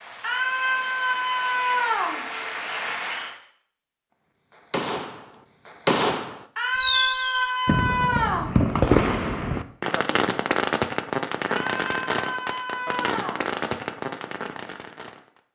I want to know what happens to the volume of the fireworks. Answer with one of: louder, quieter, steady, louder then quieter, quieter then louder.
quieter.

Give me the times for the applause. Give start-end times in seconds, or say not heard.
0.0-3.4.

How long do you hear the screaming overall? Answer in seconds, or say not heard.
6 s.